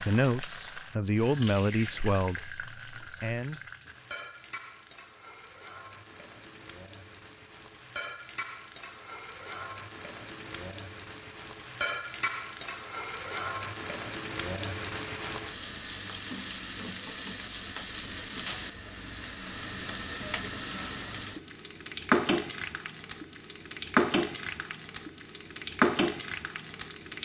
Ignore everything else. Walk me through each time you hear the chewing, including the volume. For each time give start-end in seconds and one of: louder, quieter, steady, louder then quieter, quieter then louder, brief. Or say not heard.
not heard.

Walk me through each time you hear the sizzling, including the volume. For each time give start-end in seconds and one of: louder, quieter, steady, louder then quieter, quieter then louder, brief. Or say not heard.
0.0-27.1 louder.